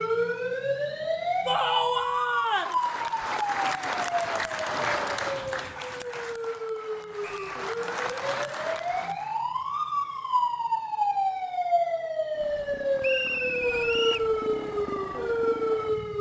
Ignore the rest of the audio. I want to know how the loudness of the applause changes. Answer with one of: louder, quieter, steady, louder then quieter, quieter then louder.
quieter then louder.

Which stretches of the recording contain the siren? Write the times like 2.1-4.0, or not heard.
0.0-16.1.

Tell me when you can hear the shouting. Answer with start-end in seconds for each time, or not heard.
1.4-2.8.